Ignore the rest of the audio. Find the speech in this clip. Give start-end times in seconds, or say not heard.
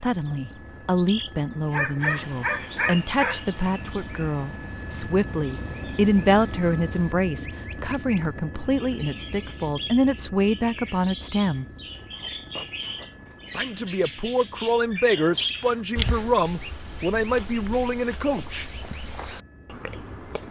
0.0-11.7, 13.6-18.6.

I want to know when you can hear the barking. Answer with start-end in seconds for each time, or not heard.
1.7-3.4.